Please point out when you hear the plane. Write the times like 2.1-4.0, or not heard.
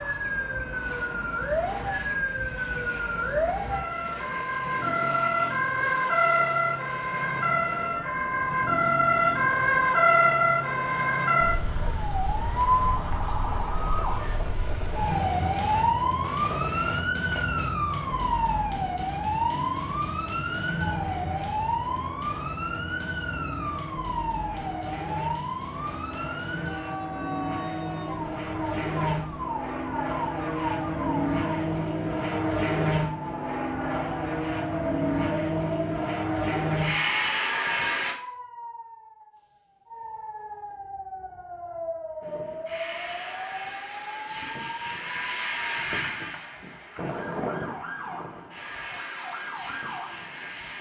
0.0-38.1, 42.2-50.7.